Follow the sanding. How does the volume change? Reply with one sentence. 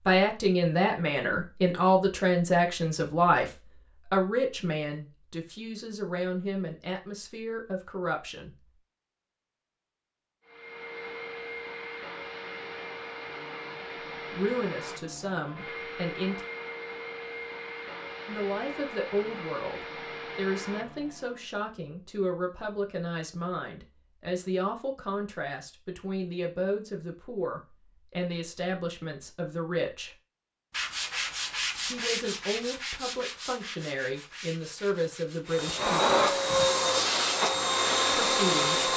The volume of the sanding goes down.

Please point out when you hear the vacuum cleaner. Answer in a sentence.
You can hear the vacuum cleaner from 10.4 to 21.4 s and from 35.5 to 38.9 s.